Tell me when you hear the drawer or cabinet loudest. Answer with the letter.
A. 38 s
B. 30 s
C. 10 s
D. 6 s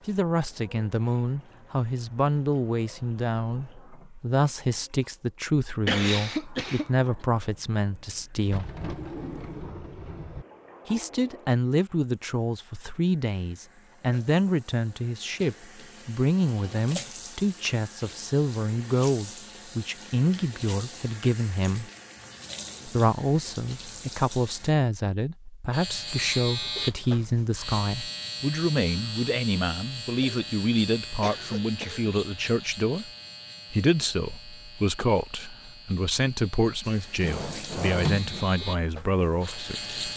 A.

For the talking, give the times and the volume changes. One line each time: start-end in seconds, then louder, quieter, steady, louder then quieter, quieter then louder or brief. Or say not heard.
0.1-8.7 steady
10.8-21.9 steady
22.9-33.1 steady
33.7-40.0 steady.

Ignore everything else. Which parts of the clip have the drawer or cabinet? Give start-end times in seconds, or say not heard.
8.4-10.4, 37.2-38.5.